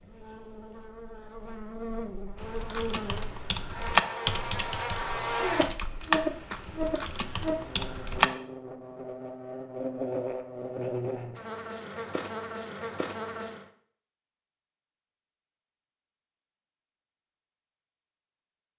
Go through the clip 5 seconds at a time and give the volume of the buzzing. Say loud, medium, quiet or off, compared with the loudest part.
medium, loud, loud, off.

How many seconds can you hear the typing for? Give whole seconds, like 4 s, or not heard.
6 s.